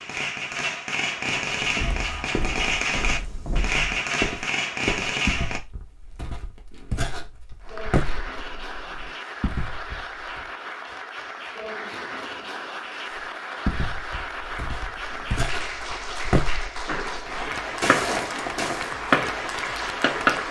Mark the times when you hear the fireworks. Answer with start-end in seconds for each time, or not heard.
0.0-5.6, 16.9-20.4.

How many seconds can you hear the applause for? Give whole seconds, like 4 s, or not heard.
13 s.